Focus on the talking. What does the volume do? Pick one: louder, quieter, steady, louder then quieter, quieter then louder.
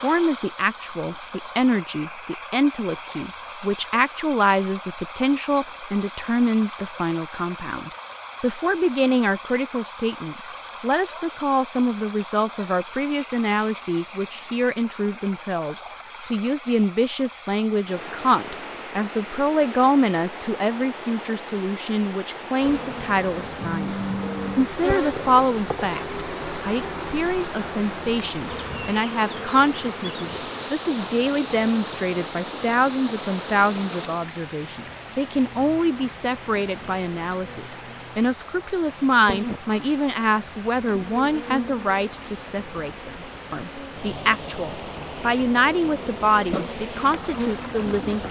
steady.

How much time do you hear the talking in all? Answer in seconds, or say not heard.
48 s.